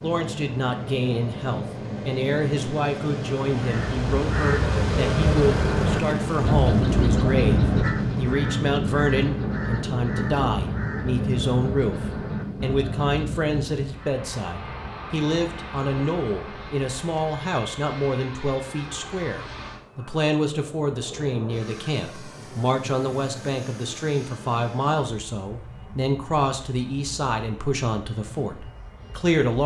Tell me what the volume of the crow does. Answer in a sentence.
The loudness of the crow goes down.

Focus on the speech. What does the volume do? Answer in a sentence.
The volume of the speech stays about the same.